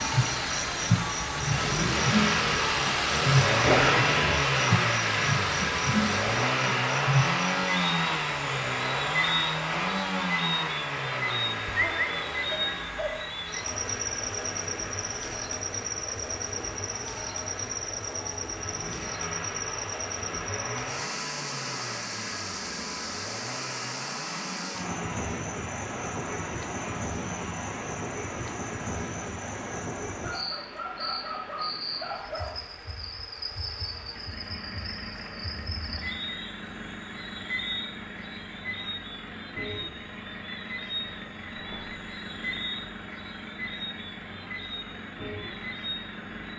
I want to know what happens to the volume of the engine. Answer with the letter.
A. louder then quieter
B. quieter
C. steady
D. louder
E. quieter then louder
B.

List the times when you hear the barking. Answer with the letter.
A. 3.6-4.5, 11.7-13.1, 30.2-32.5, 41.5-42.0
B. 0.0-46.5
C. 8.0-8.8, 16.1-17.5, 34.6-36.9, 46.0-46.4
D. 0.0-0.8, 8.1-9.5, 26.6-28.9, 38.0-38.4
A.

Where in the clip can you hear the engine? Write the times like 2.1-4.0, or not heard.
0.0-46.5.